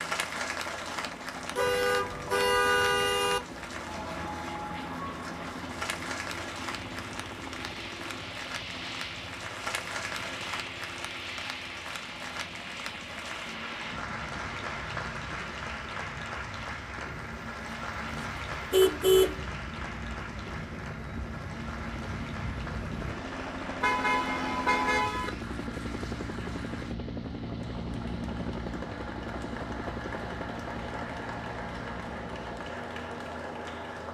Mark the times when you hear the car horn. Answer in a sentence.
You can hear the car horn from 1.6 to 3.4 s, from 17.1 to 19.4 s and from 23.8 to 25.3 s.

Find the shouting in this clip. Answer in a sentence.
You can't hear the shouting here.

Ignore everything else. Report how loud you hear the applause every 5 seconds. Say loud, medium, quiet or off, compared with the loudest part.
loud, loud, loud, loud, medium, medium, loud.